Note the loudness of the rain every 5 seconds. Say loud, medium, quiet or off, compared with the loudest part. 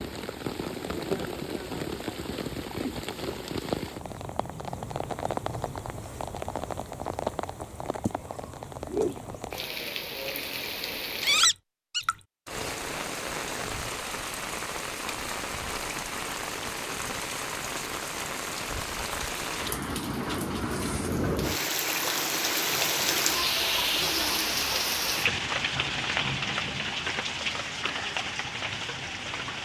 medium, medium, medium, medium, loud, loud.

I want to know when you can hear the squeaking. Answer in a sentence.
The squeaking can be heard from 11.2 to 12.1 s.